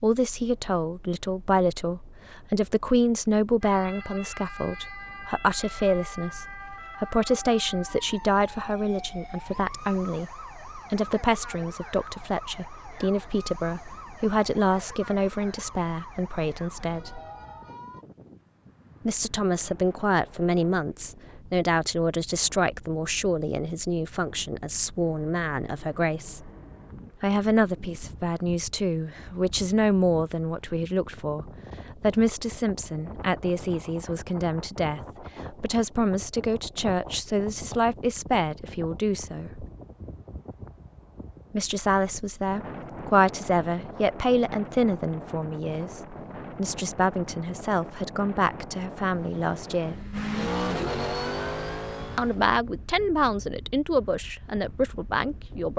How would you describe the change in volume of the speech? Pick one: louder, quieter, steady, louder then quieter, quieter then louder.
steady.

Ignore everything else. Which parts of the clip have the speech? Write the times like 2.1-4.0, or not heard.
0.0-17.2, 19.1-26.5, 27.2-39.6, 41.5-50.0, 52.1-55.7.